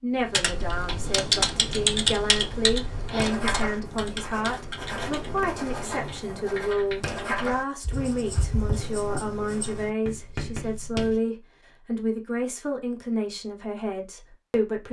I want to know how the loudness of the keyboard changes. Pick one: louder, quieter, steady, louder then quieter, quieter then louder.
quieter.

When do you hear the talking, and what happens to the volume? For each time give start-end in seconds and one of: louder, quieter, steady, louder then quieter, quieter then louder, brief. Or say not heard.
0.0-14.8 steady.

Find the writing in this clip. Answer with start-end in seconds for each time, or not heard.
3.0-11.2.